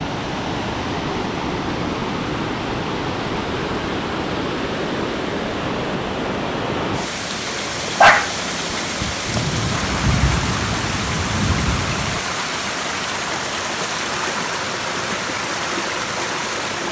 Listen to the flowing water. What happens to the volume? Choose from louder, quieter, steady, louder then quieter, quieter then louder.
steady.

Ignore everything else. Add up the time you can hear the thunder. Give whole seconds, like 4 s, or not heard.
3 s.